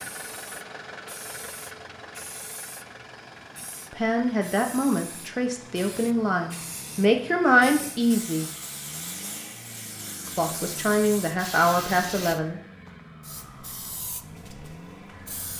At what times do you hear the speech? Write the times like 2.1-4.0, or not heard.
3.9-8.4, 10.3-12.6.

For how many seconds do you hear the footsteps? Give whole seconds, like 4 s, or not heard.
not heard.